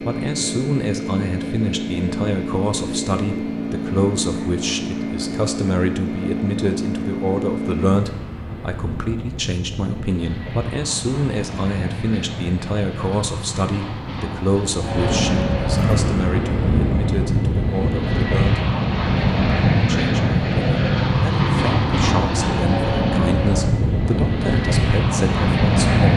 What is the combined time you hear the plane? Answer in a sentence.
You can hear the plane for 26 seconds altogether.